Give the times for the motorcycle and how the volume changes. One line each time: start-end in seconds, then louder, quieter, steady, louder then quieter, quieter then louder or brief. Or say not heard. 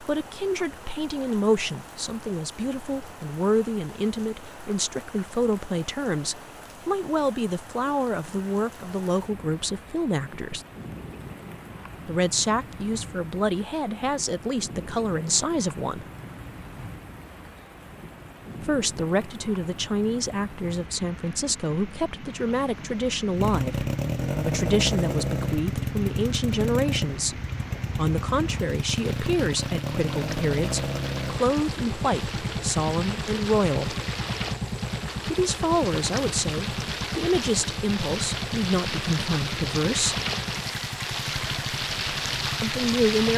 23.4-43.3 quieter.